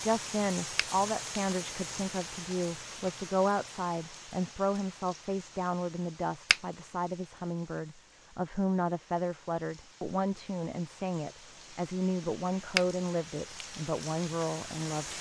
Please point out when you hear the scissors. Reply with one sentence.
You can't hear the scissors here.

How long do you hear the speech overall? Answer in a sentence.
You can hear the speech for 15 seconds altogether.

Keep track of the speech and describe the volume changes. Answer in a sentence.
The volume of the speech stays about the same.